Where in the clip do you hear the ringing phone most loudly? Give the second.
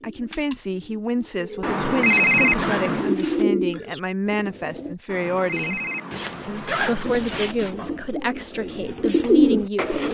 2 s.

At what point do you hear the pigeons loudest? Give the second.
9 s.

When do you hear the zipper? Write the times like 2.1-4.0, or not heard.
2.0-3.5, 6.1-7.5.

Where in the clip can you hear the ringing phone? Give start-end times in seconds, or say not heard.
1.6-3.1, 5.0-7.1.